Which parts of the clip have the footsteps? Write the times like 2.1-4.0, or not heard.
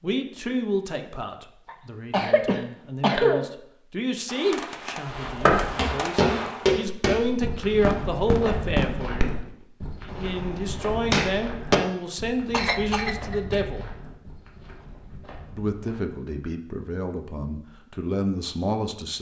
5.2-16.2.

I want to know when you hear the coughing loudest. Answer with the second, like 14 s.
3 s.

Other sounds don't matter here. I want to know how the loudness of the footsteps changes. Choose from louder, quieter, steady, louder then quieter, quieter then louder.
quieter.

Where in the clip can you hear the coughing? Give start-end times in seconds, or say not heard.
1.6-3.5, 12.5-13.9.